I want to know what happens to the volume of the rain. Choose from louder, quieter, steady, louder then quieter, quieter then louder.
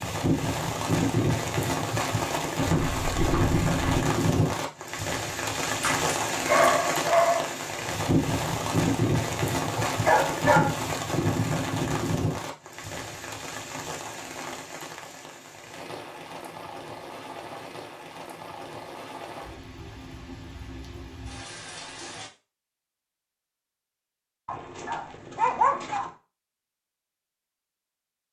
quieter.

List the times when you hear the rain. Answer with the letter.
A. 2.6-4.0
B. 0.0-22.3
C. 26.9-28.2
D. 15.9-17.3
B.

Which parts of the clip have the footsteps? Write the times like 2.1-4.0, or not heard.
2.6-4.0.